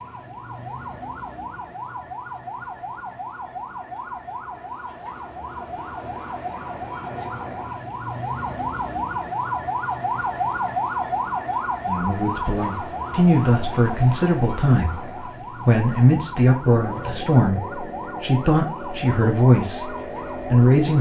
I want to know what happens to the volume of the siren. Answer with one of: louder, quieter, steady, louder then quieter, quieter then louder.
louder then quieter.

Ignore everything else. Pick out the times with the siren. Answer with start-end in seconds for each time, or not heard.
0.0-20.9.